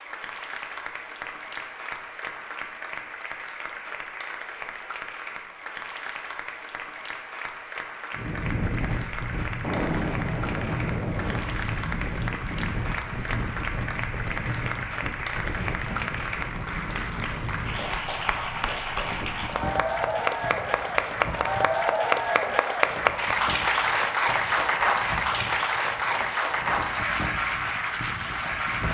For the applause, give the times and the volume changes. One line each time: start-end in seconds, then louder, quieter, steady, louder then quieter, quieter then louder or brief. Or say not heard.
0.0-28.9 louder.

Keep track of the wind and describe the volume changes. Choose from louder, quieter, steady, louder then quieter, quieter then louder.
quieter.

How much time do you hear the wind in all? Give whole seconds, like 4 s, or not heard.
21 s.